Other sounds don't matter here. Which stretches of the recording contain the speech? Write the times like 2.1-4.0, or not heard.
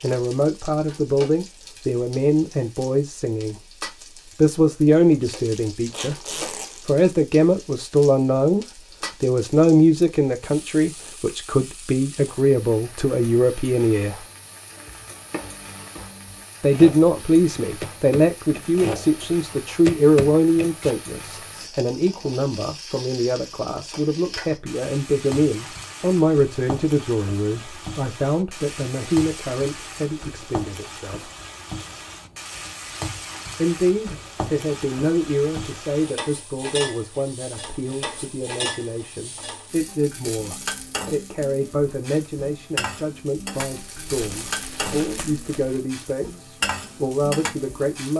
0.0-3.5, 4.3-6.2, 6.8-14.2, 16.6-31.3, 33.5-48.1.